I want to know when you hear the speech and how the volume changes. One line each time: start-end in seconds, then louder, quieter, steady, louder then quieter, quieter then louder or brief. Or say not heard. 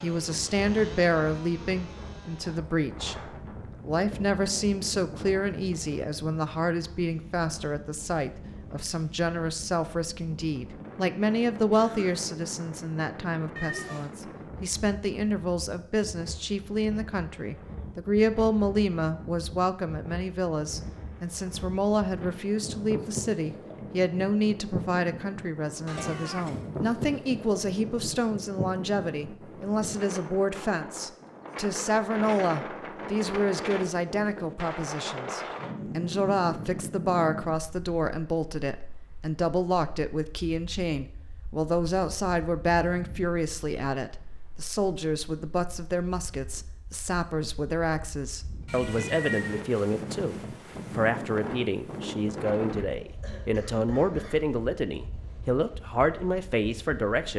0.0-57.3 steady.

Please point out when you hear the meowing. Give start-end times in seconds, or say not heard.
13.6-14.1, 25.9-26.6, 48.6-49.6.